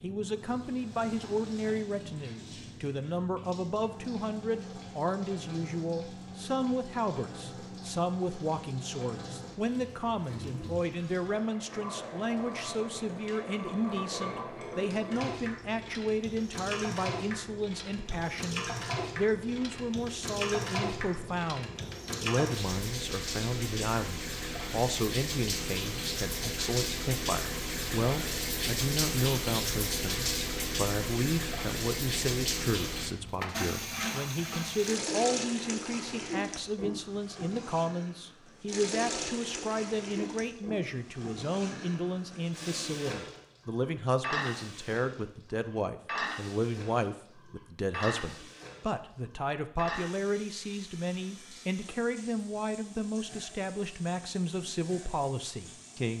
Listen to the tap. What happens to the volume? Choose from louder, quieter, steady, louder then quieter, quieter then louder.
louder then quieter.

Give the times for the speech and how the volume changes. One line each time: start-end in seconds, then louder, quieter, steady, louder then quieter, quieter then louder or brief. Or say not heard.
0.0-56.1 steady.